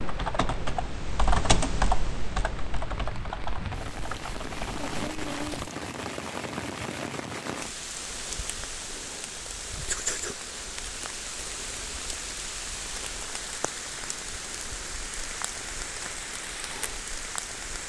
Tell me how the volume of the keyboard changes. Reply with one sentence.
The volume of the keyboard goes up, then down.